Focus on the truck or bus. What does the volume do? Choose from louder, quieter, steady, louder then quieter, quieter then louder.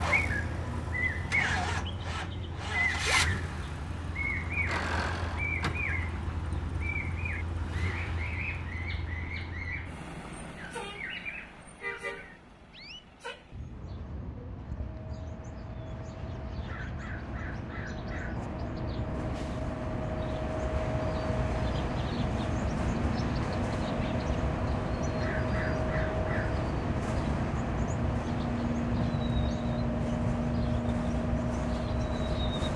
quieter then louder.